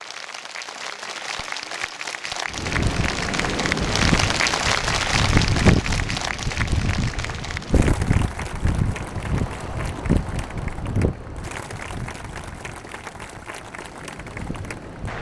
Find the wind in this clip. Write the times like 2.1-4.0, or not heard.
2.5-15.1.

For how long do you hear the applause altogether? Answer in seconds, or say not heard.
15 s.